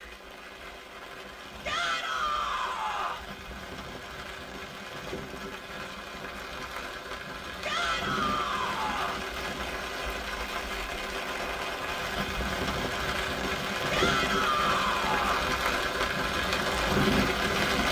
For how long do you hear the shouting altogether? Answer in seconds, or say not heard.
5 s.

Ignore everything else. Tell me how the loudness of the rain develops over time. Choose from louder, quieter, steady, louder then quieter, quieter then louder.
louder.